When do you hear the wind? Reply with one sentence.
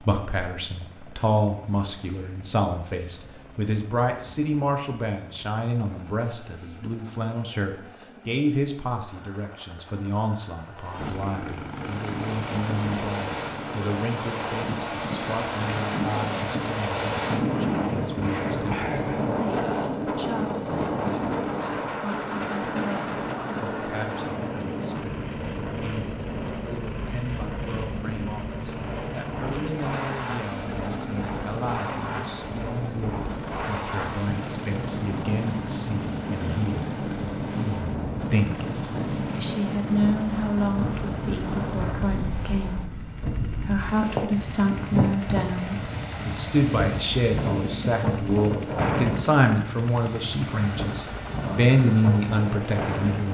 You can hear the wind from 11.7 to 53.3 s.